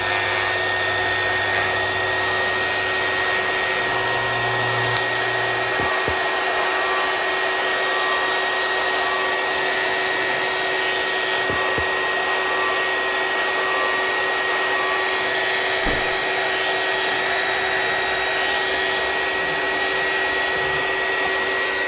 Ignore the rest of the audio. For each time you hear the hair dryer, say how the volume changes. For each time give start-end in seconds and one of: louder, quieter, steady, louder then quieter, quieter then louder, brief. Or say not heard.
0.0-21.8 steady.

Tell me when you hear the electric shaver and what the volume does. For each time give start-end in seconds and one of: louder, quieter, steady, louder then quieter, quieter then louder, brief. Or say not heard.
0.0-21.8 steady.